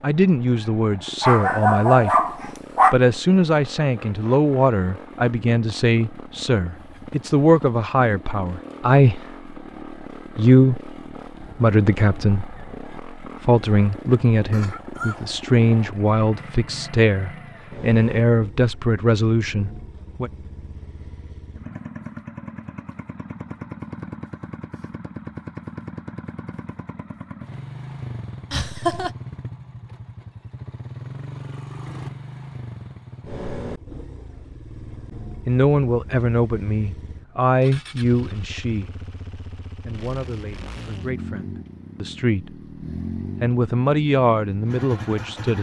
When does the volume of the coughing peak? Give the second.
29 s.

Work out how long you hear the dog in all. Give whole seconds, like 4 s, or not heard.
2 s.